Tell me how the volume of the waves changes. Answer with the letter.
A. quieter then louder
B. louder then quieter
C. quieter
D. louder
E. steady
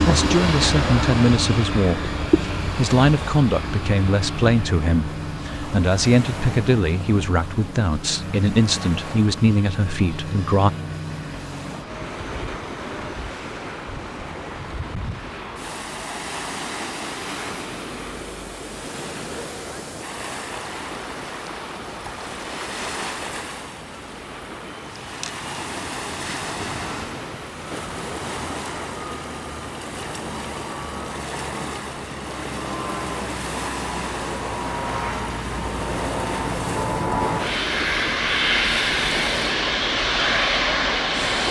E.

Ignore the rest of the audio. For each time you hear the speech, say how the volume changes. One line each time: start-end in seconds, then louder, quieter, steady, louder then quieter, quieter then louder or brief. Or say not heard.
0.0-10.7 steady.